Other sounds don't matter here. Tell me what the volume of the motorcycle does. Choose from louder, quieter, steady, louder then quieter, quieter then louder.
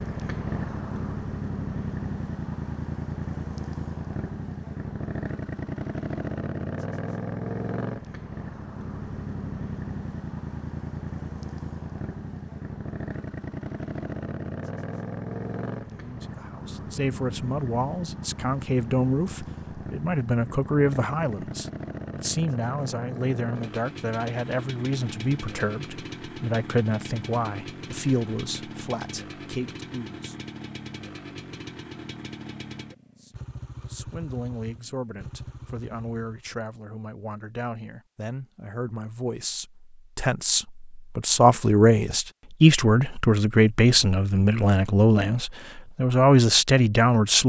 quieter.